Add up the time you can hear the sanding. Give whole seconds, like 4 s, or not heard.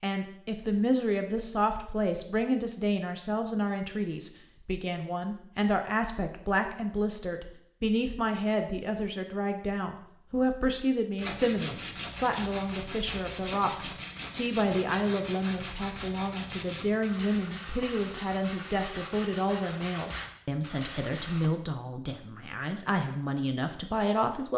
10 s.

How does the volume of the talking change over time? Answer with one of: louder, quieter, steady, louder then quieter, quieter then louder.
steady.